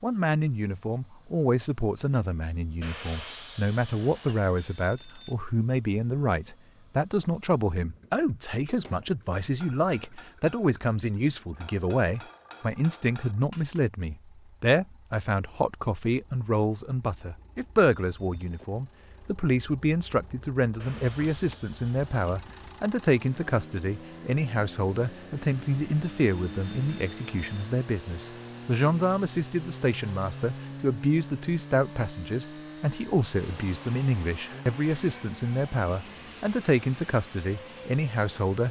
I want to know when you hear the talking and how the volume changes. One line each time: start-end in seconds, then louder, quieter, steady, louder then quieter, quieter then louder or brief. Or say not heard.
0.0-38.6 steady.